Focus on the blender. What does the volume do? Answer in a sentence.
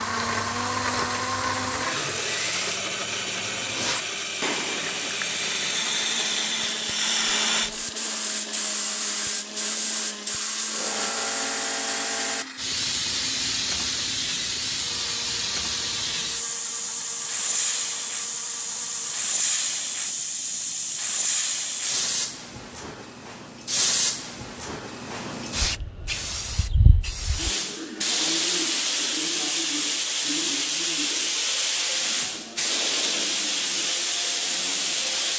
The volume of the blender goes down.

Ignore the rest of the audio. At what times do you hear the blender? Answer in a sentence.
You can hear the blender from 0.0 to 19.4 s.